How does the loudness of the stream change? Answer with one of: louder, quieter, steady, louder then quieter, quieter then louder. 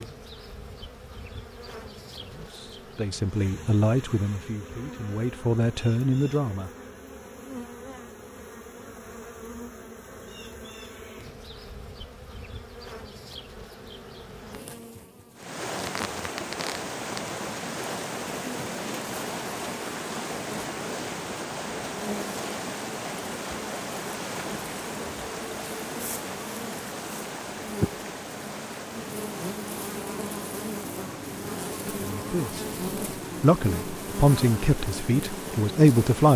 quieter.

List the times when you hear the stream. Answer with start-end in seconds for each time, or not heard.
15.3-36.3.